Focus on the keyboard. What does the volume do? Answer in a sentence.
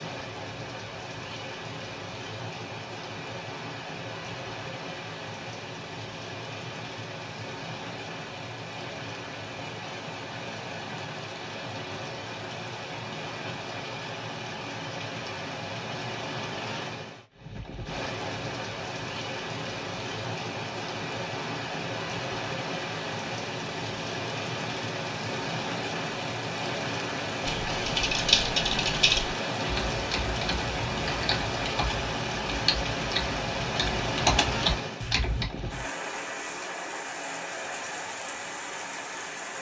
The loudness of the keyboard goes down, then up.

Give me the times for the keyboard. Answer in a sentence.
You can hear the keyboard from 27.4 to 35.5 s.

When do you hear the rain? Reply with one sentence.
The rain can be heard from 0.0 to 39.5 s.